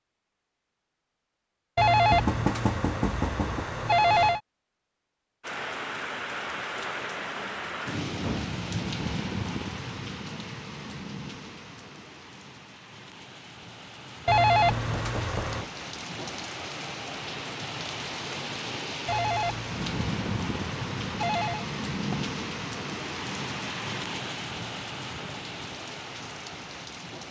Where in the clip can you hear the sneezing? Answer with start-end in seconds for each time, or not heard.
not heard.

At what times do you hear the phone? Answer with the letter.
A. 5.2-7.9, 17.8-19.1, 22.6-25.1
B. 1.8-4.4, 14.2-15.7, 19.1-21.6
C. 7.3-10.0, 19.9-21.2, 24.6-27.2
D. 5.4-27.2
B.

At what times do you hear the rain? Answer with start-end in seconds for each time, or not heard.
5.4-27.2.